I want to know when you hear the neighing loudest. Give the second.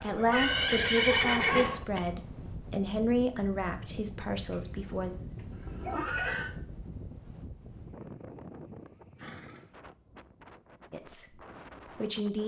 1 s.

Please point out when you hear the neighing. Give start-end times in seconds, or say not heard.
0.1-2.0, 4.3-6.5, 9.2-9.7.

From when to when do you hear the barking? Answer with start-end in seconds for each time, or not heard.
0.0-1.9.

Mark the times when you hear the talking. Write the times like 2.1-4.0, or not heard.
0.0-5.1, 10.9-12.4.